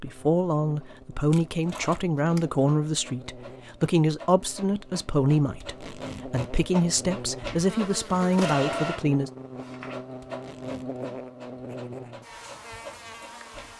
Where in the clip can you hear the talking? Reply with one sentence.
You can hear the talking from 0.0 to 9.3 s.